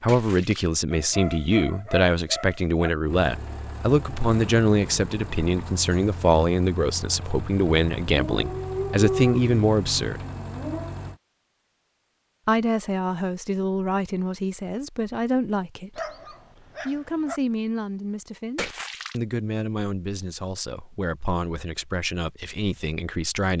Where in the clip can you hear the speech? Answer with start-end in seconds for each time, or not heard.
0.0-10.2, 12.4-16.1, 16.9-23.5.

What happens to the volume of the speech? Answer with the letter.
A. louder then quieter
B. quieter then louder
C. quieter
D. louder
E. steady
C.